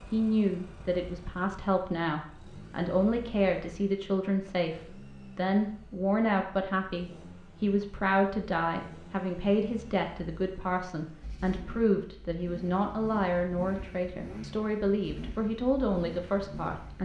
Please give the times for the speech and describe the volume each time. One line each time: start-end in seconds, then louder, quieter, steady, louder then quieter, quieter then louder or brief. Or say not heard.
0.1-17.0 steady.